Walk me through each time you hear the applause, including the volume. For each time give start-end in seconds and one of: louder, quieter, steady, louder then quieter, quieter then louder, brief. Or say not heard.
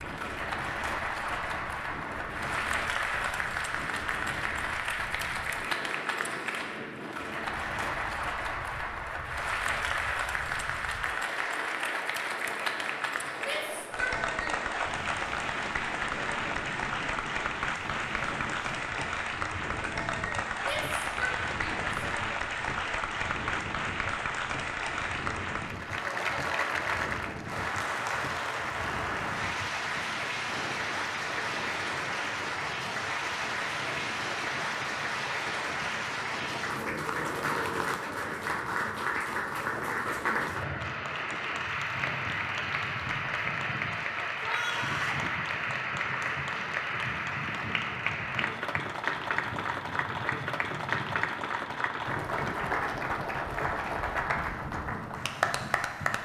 0.0-56.1 steady.